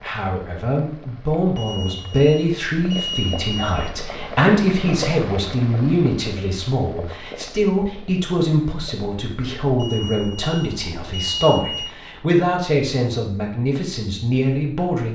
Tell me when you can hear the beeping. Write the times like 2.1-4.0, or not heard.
1.6-4.0, 9.8-11.9.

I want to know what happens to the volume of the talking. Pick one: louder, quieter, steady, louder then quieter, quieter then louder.
steady.